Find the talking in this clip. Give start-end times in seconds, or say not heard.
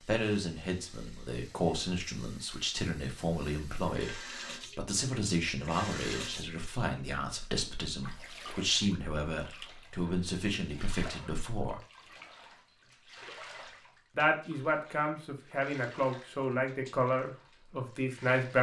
0.0-11.8, 14.2-18.5.